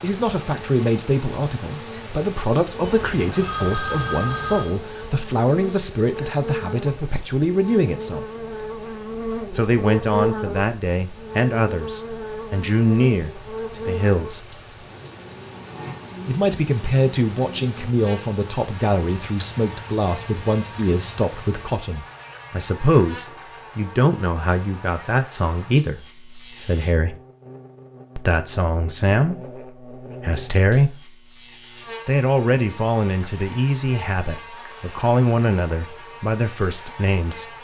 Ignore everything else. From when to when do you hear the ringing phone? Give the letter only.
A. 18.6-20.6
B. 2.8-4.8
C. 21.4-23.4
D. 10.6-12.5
B.